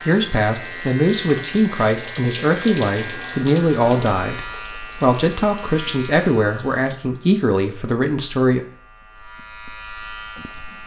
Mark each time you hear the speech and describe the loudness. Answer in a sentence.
The speech can be heard from 0.1 to 8.6 s, at a steady volume.